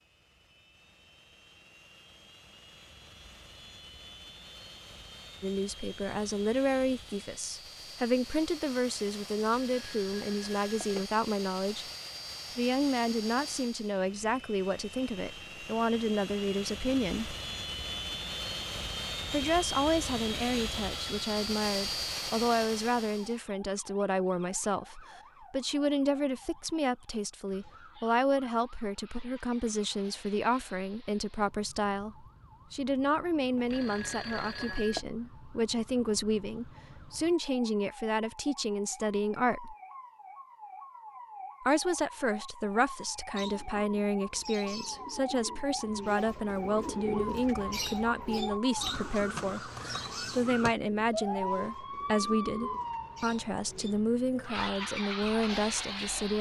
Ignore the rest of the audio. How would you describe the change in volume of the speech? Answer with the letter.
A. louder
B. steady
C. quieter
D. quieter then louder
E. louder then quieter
B.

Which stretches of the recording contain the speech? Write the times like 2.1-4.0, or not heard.
5.4-11.8, 12.6-17.4, 19.3-39.8, 41.6-56.3.